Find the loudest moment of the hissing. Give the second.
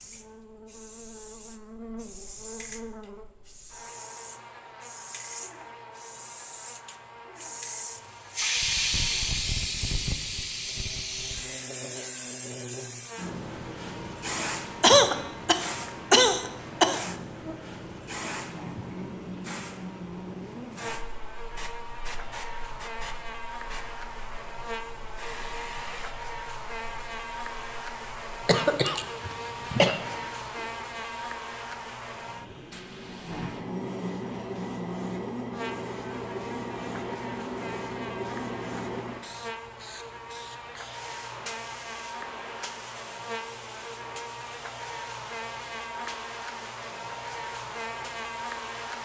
9 s.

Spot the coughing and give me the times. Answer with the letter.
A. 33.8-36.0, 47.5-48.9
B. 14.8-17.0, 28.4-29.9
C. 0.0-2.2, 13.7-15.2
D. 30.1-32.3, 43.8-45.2
B.